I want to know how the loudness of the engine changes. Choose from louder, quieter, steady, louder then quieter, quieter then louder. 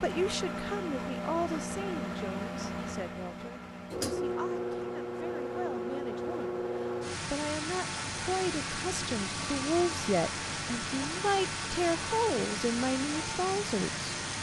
steady.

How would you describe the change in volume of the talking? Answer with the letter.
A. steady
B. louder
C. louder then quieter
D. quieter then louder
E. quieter
D.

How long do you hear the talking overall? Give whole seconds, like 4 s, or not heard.
14 s.